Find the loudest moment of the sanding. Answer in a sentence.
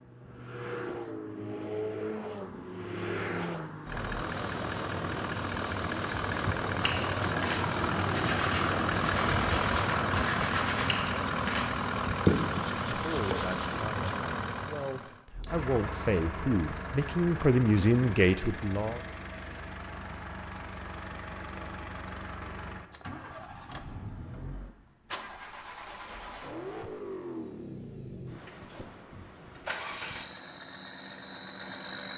The volume of the sanding peaks at 12 seconds.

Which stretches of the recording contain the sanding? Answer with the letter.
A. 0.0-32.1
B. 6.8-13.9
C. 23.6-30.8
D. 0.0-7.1
B.